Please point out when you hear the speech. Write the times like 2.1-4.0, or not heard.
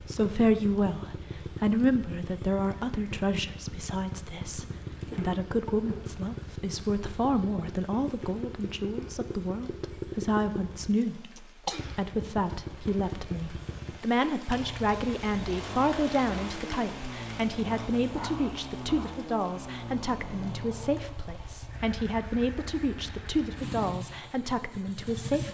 0.0-25.4.